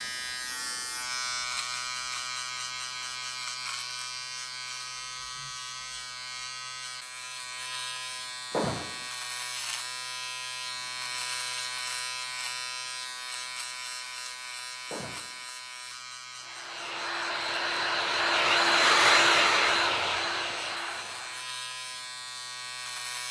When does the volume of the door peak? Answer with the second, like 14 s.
9 s.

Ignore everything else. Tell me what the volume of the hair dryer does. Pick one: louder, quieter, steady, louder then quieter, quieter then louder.
louder then quieter.